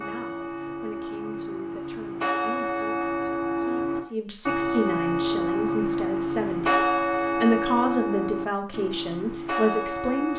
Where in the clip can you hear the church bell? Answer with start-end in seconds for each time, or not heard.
0.0-10.3.